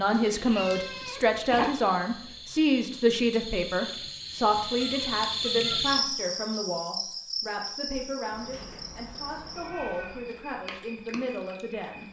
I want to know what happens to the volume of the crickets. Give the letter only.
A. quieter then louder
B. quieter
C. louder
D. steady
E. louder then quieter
E.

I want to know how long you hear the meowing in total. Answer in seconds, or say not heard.
5 s.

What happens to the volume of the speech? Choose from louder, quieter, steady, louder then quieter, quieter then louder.
quieter.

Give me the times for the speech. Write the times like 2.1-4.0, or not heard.
0.0-12.0.